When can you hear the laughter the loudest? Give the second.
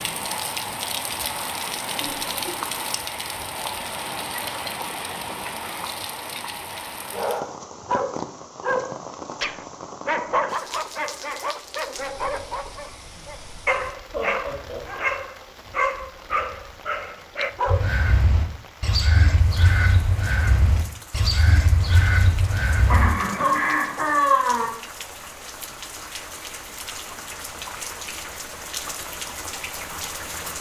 24 s.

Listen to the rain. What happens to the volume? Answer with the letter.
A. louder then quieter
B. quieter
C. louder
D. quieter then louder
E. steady
D.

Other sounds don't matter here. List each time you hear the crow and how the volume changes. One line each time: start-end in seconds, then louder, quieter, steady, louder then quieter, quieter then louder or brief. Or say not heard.
17.6-23.1 steady.